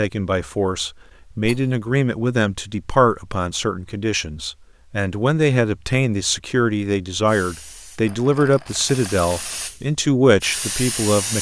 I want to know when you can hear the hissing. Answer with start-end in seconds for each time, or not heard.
7.2-11.3.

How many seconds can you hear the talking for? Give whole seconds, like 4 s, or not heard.
11 s.